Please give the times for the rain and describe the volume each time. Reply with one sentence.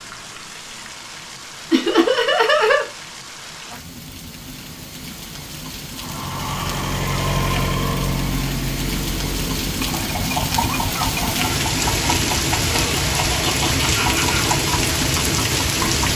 You can hear the rain from 0.0 to 16.1 s, getting louder.